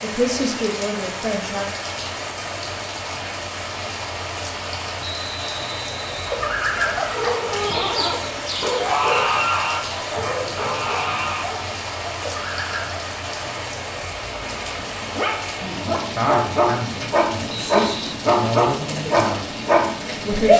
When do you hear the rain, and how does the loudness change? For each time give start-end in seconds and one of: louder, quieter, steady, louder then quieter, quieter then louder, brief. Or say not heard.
0.0-20.5 steady.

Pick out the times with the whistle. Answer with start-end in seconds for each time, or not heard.
5.0-6.5, 17.4-17.9.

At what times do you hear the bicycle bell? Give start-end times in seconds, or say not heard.
not heard.